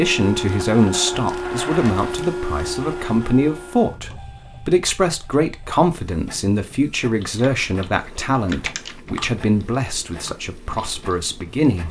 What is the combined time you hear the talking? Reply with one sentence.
The talking can be heard for 12 seconds in total.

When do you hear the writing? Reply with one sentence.
You can't hear the writing here.